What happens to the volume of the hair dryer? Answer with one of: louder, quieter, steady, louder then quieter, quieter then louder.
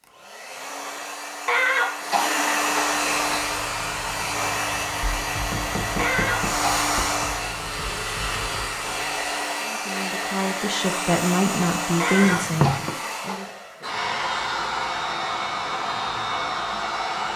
steady.